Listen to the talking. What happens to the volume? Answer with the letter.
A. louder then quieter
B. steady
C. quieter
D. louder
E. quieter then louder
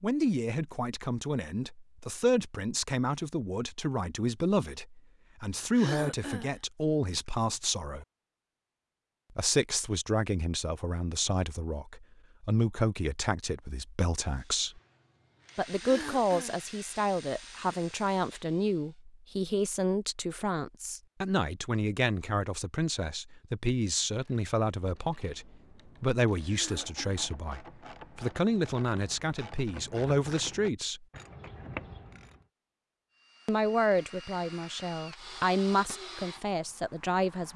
B.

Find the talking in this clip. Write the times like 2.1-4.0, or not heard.
0.0-8.1, 9.3-14.8, 15.6-31.1, 33.5-37.5.